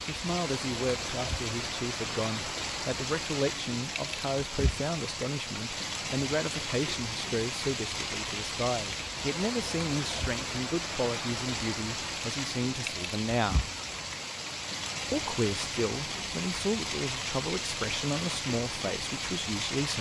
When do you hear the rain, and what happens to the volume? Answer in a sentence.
The rain can be heard from 0.0 to 19.9 s, at a steady volume.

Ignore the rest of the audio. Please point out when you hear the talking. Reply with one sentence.
The talking can be heard from 0.1 to 13.7 s and from 15.1 to 19.9 s.